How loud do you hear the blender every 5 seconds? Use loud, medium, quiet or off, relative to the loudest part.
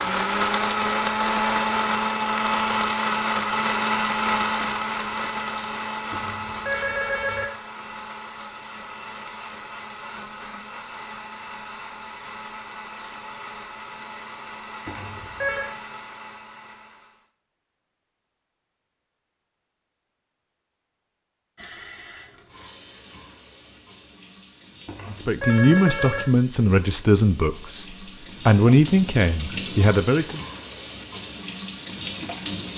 loud, medium, quiet, quiet, off, off, off.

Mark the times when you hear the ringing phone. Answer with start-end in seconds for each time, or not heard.
6.1-7.5, 14.8-15.7, 24.9-26.2.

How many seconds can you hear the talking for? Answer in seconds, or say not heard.
5 s.